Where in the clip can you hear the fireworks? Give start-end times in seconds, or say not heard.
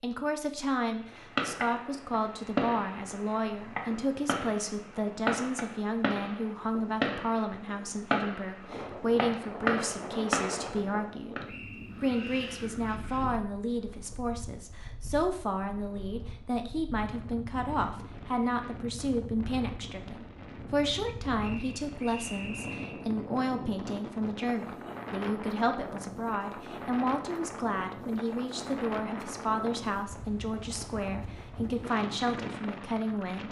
1.1-11.4.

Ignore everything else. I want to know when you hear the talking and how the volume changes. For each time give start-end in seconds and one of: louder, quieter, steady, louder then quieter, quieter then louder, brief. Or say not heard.
0.0-33.4 steady.